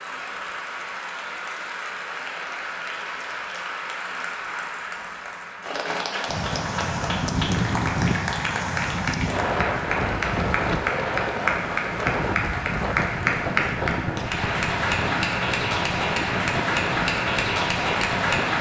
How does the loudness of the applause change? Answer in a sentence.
The volume of the applause goes up.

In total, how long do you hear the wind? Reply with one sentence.
You can hear the wind for 12 seconds altogether.